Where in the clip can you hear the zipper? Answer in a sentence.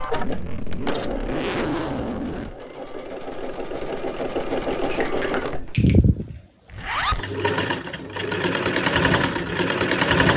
You can hear the zipper from 0.1 to 2.6 s and from 6.7 to 7.2 s.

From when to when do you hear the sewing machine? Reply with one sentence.
The sewing machine can be heard from 0.0 to 10.3 s.